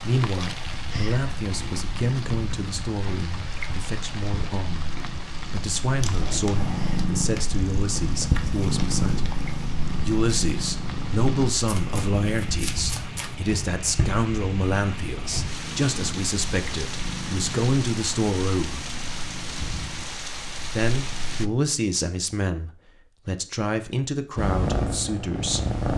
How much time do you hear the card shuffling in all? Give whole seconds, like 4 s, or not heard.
2 s.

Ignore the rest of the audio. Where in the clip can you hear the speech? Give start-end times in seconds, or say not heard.
0.0-9.4, 10.1-18.9, 20.7-25.6.